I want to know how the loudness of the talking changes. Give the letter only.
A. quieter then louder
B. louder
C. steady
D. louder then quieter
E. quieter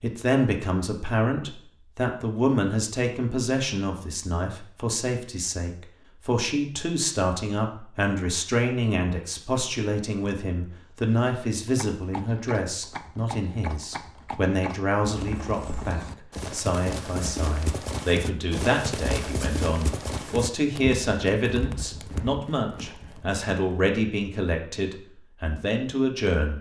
C.